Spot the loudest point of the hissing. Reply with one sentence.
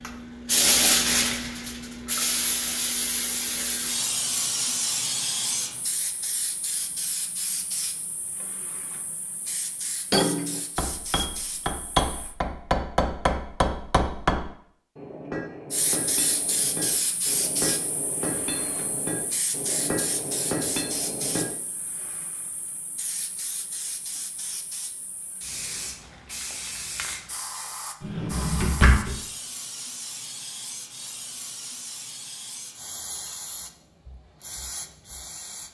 The volume of the hissing peaks at 1 second.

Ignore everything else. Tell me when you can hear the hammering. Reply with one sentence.
You can hear the hammering from 10.1 to 21.6 s.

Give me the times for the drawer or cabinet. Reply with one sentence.
The drawer or cabinet can be heard from 28.0 to 29.1 s.